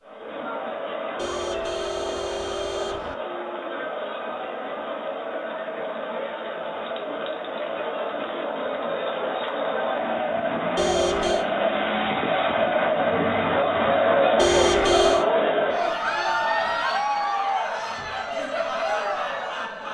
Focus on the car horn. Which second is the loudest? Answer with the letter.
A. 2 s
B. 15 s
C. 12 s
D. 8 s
B.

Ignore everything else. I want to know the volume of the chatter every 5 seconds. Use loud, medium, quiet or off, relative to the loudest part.
medium, medium, loud, loud.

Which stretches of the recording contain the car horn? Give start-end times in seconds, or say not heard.
1.1-3.1, 10.8-11.4, 14.3-15.2.